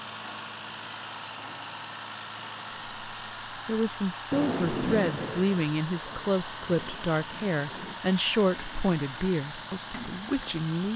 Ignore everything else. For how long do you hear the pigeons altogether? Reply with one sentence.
The pigeons can't be heard in this clip.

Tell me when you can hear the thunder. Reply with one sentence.
The thunder can be heard from 4.3 to 8.0 s.